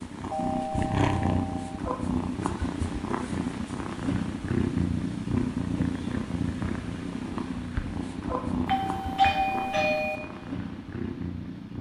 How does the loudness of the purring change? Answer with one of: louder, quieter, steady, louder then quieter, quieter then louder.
quieter.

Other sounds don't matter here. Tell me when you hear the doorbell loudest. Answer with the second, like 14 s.
9 s.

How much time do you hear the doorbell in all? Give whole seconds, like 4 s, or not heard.
3 s.